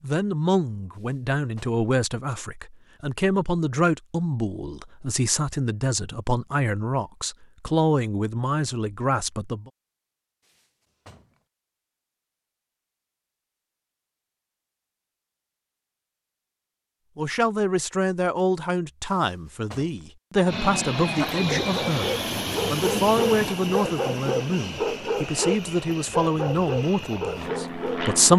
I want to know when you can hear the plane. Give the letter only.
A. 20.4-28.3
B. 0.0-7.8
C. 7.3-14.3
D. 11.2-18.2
A.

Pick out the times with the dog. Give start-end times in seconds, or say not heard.
21.0-28.0.